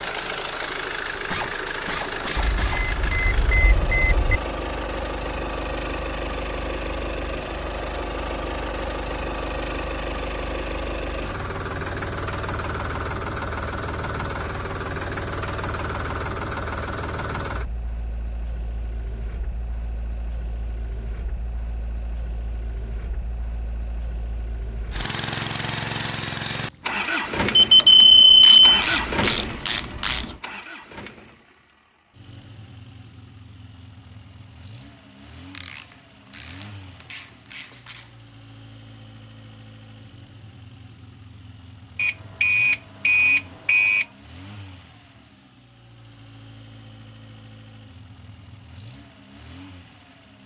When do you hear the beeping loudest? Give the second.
28 s.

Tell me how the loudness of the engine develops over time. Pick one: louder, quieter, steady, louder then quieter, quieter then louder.
quieter.